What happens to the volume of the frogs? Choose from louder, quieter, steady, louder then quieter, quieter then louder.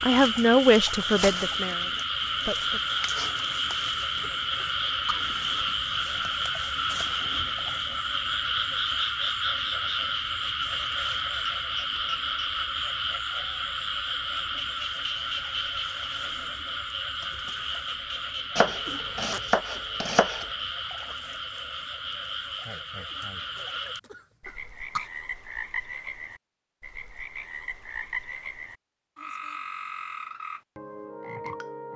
quieter.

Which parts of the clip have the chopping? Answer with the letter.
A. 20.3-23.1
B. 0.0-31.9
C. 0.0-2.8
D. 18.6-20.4
D.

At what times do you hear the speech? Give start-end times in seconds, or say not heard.
0.0-2.8.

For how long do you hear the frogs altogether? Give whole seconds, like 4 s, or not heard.
32 s.